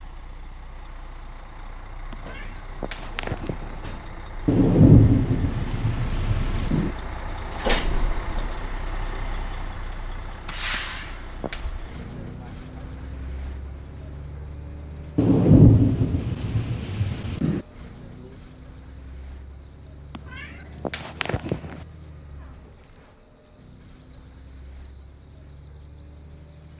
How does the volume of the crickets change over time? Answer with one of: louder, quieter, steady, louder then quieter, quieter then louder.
steady.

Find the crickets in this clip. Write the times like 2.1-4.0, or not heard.
0.0-26.7.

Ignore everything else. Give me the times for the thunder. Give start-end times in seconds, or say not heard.
4.5-6.9, 15.2-17.6.